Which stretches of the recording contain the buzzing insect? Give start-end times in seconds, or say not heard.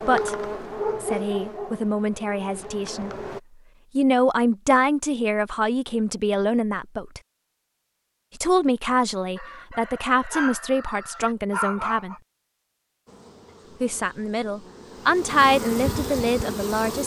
0.0-3.4, 13.1-17.0.